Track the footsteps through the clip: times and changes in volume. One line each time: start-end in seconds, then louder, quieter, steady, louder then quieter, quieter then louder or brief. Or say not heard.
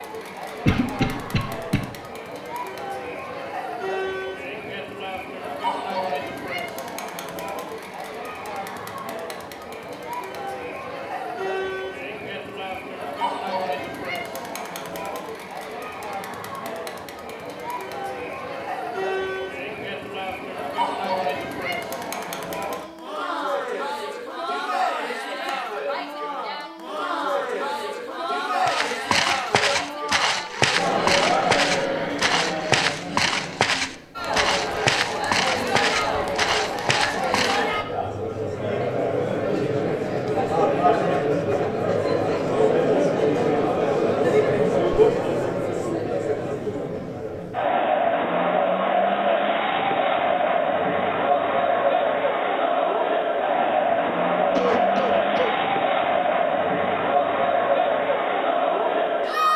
28.6-37.6 steady.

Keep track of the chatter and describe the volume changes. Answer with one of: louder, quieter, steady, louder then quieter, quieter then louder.
louder.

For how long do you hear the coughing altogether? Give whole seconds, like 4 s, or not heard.
2 s.